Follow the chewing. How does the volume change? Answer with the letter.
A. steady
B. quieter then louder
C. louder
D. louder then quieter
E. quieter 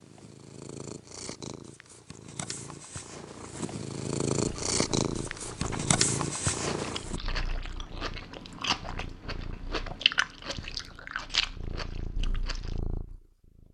C.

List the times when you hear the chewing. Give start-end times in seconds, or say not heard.
4.5-12.8.